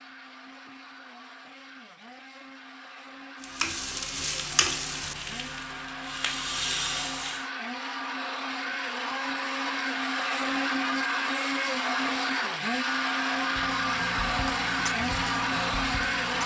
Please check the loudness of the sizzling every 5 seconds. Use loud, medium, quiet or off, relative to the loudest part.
loud, loud, medium, medium.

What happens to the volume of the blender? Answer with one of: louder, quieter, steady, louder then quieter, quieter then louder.
louder.